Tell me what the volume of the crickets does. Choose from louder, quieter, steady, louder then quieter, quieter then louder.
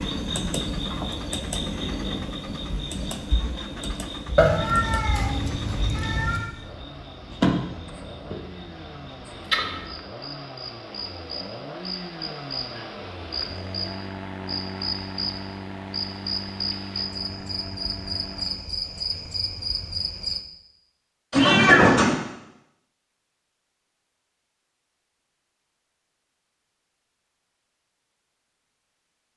steady.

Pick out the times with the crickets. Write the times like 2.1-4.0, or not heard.
0.0-20.4.